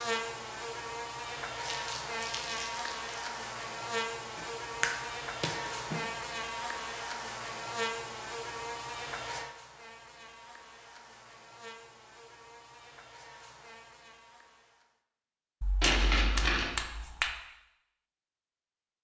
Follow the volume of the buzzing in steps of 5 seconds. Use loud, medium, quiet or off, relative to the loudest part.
loud, loud, quiet, off.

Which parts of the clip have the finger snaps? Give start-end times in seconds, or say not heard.
4.3-6.0, 15.6-17.4.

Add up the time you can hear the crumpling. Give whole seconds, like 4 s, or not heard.
2 s.